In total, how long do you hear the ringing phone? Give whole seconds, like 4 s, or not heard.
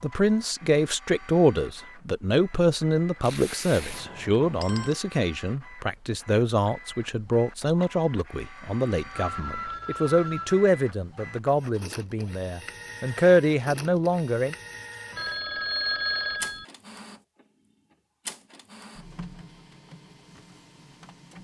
4 s.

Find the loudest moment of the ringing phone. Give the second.
16 s.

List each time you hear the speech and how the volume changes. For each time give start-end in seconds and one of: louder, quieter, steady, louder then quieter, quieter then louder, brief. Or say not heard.
0.0-14.6 steady.